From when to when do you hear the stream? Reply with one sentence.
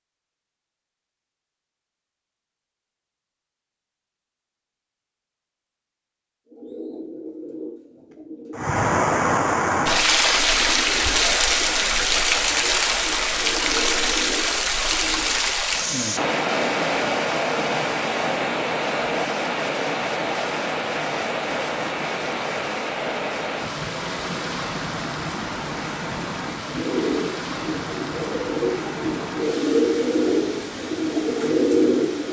The stream can be heard from 8.6 to 32.2 s.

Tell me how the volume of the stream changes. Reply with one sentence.
The loudness of the stream goes down.